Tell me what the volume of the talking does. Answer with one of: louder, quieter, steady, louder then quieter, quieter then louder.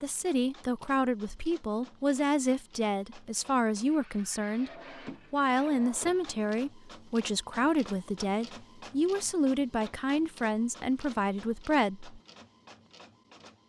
steady.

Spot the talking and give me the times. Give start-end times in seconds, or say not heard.
0.0-4.7, 5.3-12.2.